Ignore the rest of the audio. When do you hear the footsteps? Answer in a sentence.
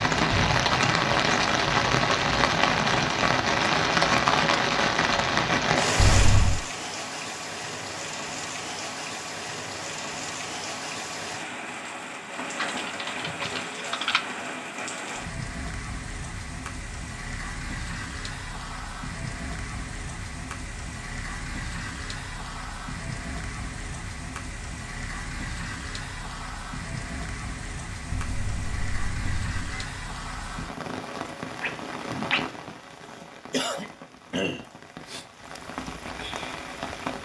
The footsteps can't be heard in this clip.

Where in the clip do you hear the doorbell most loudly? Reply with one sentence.
The volume of the doorbell peaks at 6 seconds.